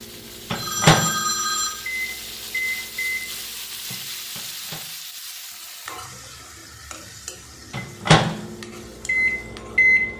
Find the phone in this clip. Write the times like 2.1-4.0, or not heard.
0.1-1.7.